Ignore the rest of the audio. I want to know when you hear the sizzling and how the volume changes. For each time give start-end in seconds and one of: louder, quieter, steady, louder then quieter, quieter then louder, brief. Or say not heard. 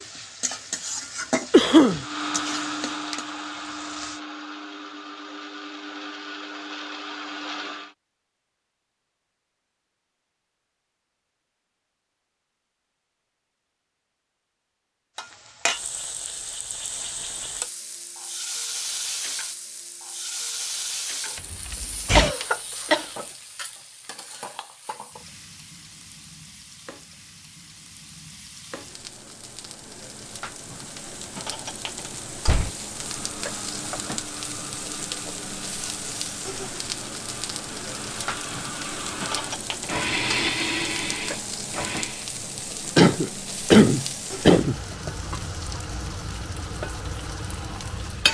0.0-4.2 quieter
15.2-48.3 quieter then louder.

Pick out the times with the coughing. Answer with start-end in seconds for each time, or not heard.
1.5-2.0, 22.1-23.2, 43.0-44.8.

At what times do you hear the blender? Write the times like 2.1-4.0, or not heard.
1.9-8.0, 33.0-42.3.